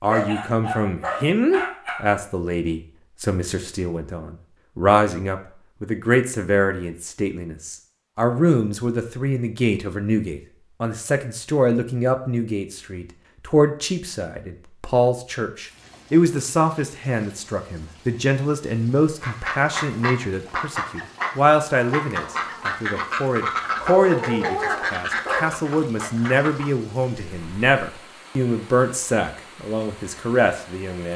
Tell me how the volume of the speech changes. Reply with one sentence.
The loudness of the speech stays about the same.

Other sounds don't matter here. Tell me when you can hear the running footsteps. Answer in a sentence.
The running footsteps can't be heard in this clip.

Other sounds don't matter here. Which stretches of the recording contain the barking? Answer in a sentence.
You can hear the barking from 0.1 to 2.0 s and from 23.8 to 25.6 s.